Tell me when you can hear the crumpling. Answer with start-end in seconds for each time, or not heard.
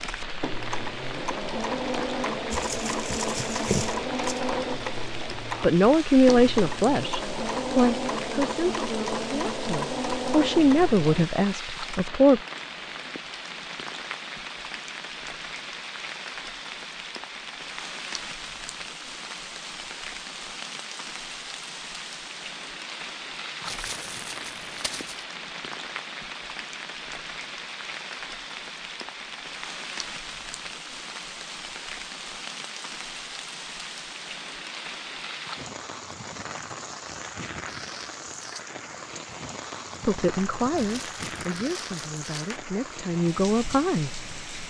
2.5-4.4, 23.6-25.2, 40.6-42.6.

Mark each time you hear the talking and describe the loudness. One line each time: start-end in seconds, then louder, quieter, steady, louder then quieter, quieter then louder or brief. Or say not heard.
5.6-12.4 quieter then louder
40.0-44.6 quieter then louder.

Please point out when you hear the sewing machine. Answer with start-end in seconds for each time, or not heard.
0.0-11.2.